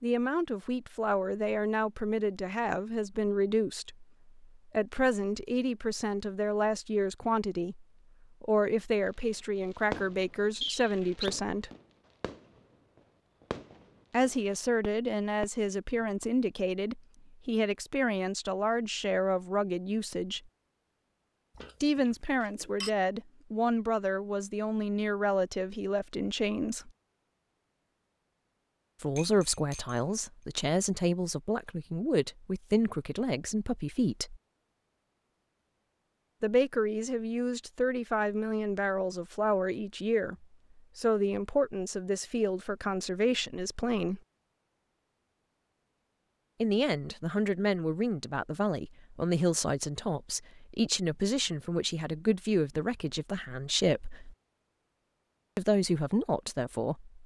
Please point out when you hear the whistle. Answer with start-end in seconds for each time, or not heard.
10.6-11.3.